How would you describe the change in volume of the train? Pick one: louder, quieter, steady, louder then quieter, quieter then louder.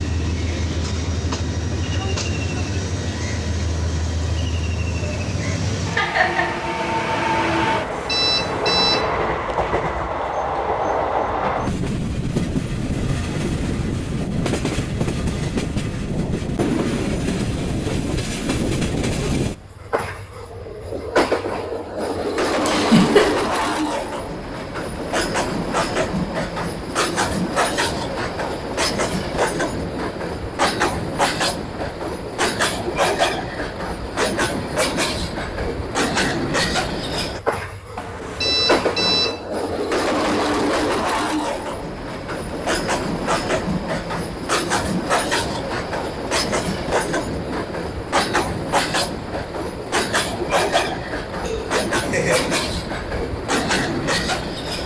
steady.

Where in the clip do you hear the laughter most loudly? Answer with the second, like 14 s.
23 s.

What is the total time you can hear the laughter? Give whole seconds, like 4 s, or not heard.
2 s.